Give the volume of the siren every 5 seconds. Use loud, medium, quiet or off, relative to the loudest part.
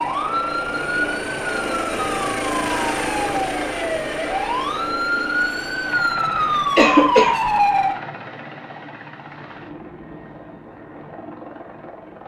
medium, loud, off.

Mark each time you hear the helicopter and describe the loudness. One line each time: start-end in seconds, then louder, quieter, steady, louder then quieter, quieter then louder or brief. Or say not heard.
0.0-12.2 quieter.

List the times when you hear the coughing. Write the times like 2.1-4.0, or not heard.
6.8-7.3.